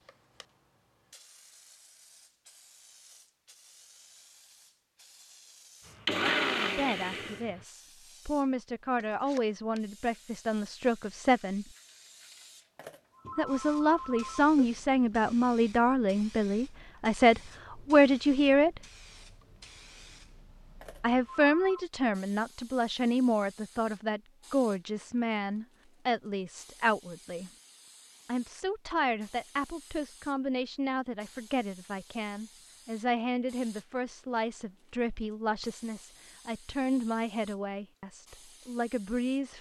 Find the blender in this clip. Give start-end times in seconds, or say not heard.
5.8-7.7.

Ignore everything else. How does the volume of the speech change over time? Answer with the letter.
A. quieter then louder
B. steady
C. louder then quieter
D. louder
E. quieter
C.